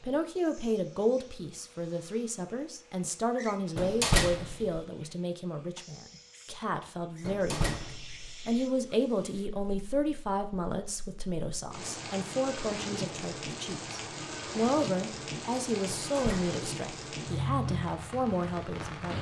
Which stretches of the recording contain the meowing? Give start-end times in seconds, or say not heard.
not heard.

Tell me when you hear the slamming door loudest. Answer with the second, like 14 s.
4 s.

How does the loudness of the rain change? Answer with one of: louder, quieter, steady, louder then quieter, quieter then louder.
louder.